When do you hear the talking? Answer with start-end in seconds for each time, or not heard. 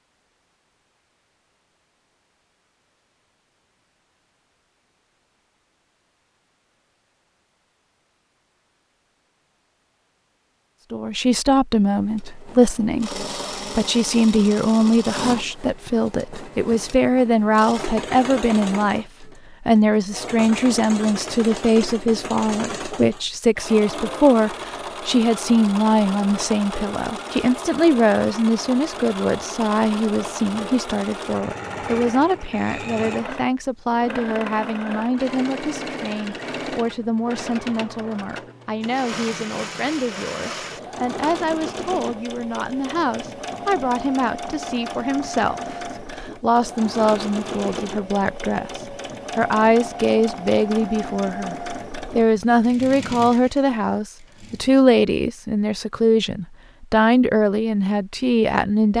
10.9-58.9.